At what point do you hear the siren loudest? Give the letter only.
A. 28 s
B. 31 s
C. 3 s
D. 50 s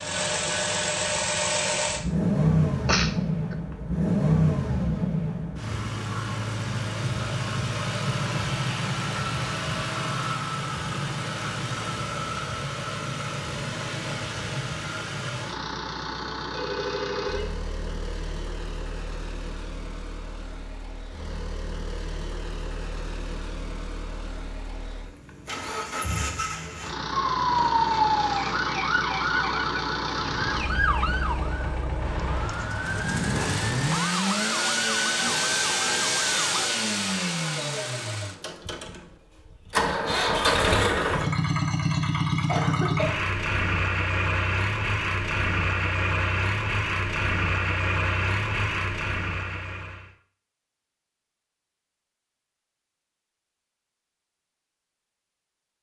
A.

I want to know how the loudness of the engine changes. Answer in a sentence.
The volume of the engine goes down, then up.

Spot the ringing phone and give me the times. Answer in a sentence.
The ringing phone can be heard from 16.5 to 17.6 s.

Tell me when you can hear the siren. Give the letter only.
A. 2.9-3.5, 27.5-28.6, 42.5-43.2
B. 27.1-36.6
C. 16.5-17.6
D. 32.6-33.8
B.